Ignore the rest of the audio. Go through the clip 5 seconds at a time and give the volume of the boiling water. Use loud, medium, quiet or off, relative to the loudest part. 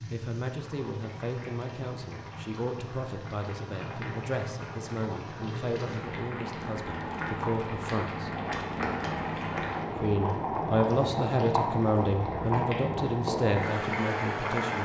medium, loud, loud.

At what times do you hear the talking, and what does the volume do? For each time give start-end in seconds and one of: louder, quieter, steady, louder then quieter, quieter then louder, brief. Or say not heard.
0.1-8.3 steady
9.9-14.8 quieter.